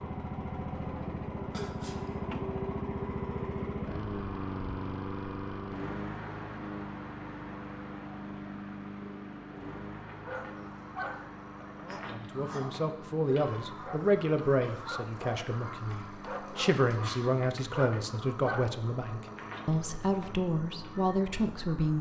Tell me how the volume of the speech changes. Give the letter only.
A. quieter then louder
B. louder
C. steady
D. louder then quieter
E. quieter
C.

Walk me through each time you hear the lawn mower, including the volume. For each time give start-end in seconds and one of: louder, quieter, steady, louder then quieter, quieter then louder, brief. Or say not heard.
0.0-21.9 quieter.